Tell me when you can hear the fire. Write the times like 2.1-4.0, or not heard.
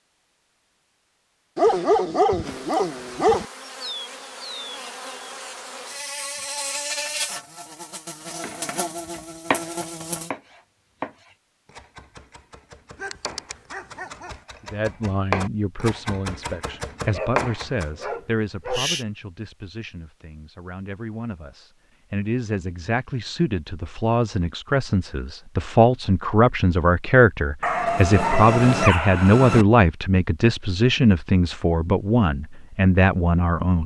not heard.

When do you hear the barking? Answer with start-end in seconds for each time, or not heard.
1.6-3.5, 13.0-14.3, 17.1-19.1, 27.6-29.6.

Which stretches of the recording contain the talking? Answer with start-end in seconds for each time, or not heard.
14.7-33.8.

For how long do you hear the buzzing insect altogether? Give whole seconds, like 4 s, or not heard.
8 s.